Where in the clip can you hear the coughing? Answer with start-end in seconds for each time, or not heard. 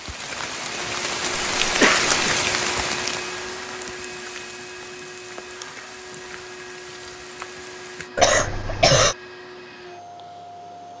1.6-2.4, 8.2-9.2.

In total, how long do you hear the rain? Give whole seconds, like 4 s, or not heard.
8 s.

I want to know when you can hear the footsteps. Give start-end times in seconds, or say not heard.
not heard.